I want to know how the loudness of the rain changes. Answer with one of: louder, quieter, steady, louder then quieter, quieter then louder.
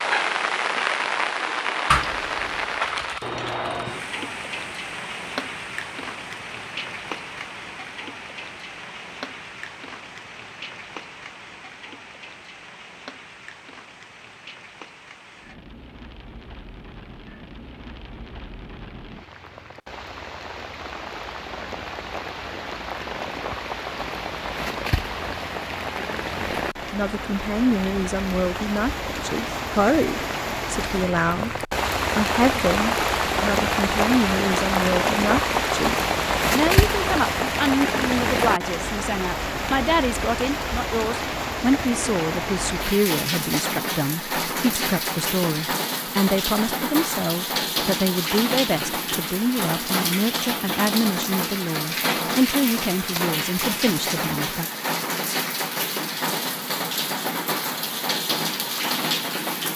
quieter then louder.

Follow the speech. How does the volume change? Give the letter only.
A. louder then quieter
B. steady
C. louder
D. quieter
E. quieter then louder
B.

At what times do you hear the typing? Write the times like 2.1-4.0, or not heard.
1.9-3.9.